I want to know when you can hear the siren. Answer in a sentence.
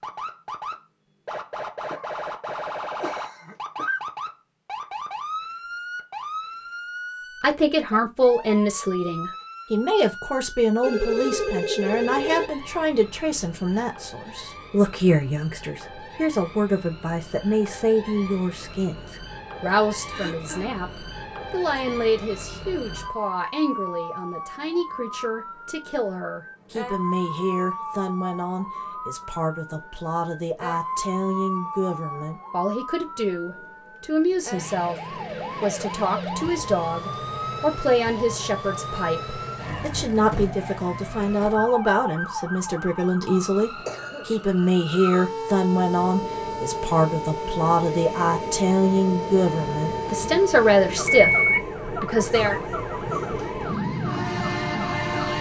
The siren can be heard from 0.0 to 55.3 s.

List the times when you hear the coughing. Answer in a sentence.
You can hear the coughing from 1.9 to 4.0 s, from 20.1 to 20.8 s and from 43.6 to 44.2 s.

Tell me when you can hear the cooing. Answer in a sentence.
The cooing can't be heard in this clip.